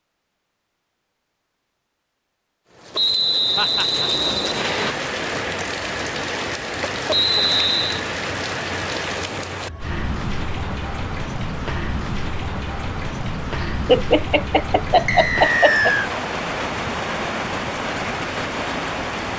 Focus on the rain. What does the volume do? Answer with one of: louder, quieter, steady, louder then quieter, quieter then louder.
steady.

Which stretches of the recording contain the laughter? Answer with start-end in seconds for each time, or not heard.
3.5-4.0, 6.6-7.5, 13.6-15.9.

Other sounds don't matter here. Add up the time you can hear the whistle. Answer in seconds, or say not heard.
4 s.